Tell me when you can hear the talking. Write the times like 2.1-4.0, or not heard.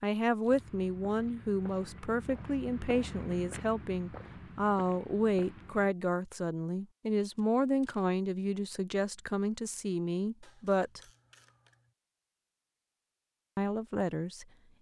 0.0-11.0, 13.6-14.4.